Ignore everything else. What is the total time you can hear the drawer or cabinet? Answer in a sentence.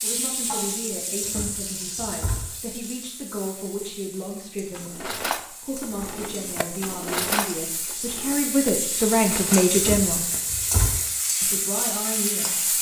The drawer or cabinet can be heard for 3 seconds in total.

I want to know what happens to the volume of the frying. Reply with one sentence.
The volume of the frying goes down, then up.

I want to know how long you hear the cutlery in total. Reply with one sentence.
The cutlery can be heard for 5 seconds in total.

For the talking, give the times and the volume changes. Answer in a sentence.
The talking can be heard from 0.0 to 10.2 s, getting louder; and briefly from 11.4 to 12.7 s.